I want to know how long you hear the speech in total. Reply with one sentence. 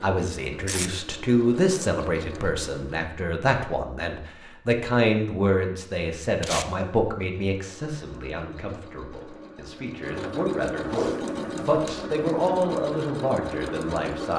The speech can be heard for 14 seconds in total.